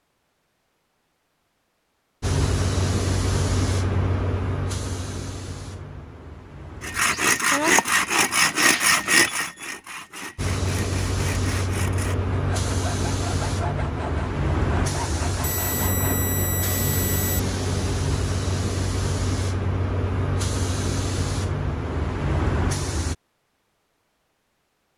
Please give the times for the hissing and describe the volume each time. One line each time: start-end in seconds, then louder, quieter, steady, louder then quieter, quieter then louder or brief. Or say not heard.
2.2-7.2 quieter
10.3-23.1 steady.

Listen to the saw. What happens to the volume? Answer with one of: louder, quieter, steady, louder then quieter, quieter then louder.
quieter.